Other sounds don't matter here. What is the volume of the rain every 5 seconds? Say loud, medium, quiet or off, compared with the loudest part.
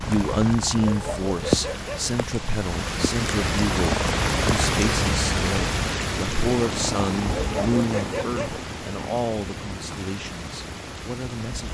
loud, loud, medium.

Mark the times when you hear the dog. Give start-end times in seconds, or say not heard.
0.8-2.1, 7.3-8.6.